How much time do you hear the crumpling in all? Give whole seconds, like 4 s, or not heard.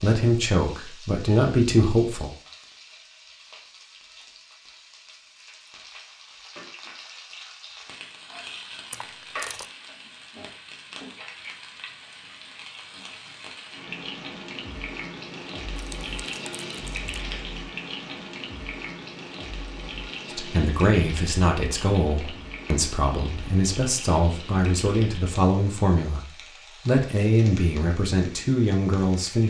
2 s.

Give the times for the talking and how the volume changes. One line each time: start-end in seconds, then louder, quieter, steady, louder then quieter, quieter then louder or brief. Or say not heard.
0.0-2.3 brief
20.4-29.4 steady.